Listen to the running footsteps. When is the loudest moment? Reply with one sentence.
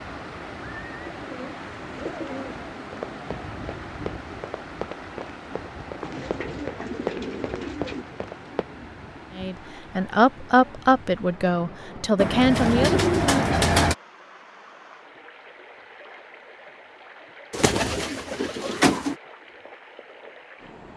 The loudest moment of the running footsteps is at 7 seconds.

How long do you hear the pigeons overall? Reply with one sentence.
The pigeons can be heard for 7 seconds in total.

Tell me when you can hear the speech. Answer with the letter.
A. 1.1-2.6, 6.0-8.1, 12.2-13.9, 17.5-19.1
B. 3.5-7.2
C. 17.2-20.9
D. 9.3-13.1
D.